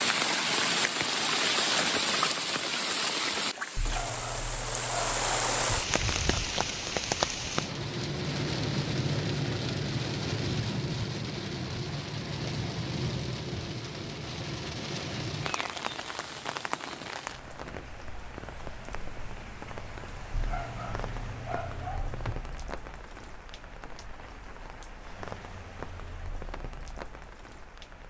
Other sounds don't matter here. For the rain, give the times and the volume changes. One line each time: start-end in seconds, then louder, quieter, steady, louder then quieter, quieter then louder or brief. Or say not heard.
0.0-28.0 quieter.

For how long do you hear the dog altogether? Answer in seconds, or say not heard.
4 s.